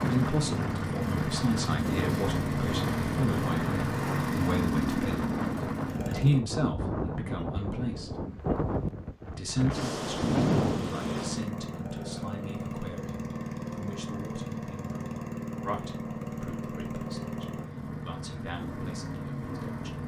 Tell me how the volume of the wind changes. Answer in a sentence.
The loudness of the wind goes up.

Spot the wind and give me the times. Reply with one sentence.
The wind can be heard from 0.0 to 11.5 s.